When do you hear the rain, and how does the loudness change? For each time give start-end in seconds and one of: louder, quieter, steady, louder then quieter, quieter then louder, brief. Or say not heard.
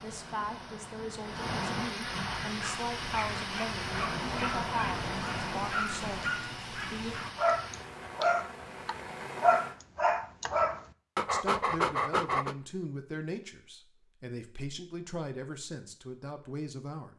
0.0-9.8 quieter.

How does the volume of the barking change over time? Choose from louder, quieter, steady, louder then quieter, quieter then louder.
louder.